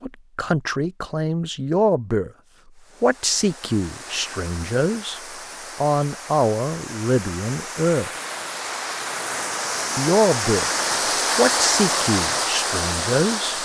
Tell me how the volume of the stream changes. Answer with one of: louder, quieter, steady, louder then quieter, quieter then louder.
louder.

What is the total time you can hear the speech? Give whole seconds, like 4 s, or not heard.
10 s.